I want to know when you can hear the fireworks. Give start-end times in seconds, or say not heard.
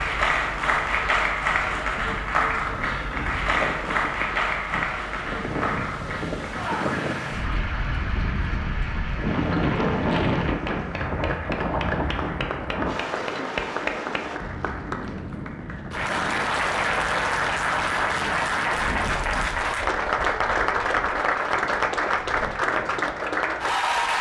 not heard.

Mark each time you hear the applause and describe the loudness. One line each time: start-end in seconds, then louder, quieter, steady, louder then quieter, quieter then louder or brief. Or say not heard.
0.0-24.1 quieter then louder.